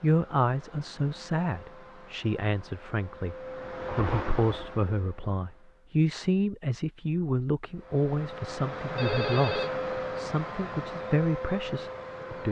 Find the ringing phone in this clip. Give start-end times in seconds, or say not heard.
8.9-9.7.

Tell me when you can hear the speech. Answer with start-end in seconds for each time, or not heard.
0.0-3.4, 4.0-12.4.